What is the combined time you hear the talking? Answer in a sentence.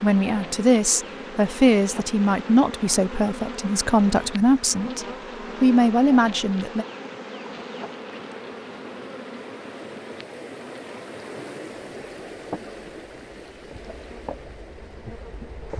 The talking can be heard for 7 seconds in total.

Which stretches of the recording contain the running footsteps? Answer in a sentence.
The running footsteps can't be heard in this clip.